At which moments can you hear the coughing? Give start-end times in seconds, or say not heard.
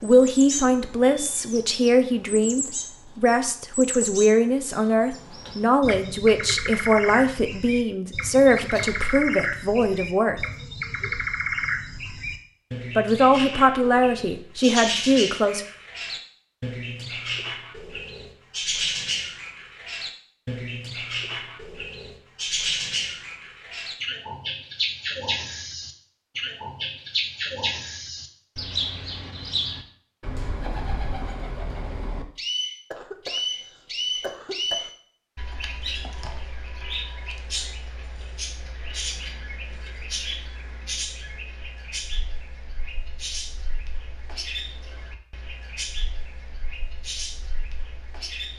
8.6-9.1, 32.9-34.9.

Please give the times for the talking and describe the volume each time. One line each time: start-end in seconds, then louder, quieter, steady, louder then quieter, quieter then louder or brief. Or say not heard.
0.0-10.4 steady
12.9-15.7 brief.